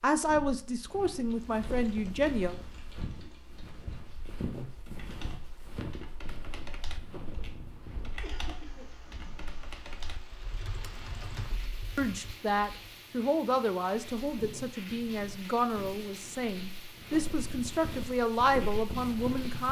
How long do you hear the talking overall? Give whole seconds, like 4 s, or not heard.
10 s.